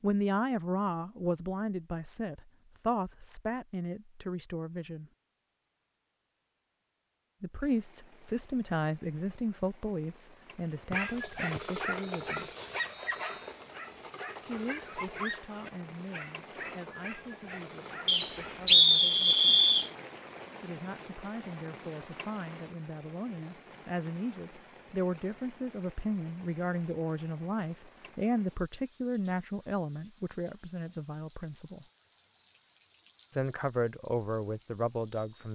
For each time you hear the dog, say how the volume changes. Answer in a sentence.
You can hear the dog from 10.9 to 18.7 s, getting quieter.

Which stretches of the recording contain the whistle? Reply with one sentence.
The whistle can be heard from 11.6 to 13.5 s and from 18.1 to 19.9 s.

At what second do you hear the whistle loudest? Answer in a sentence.
The loudest moment of the whistle is at 19 seconds.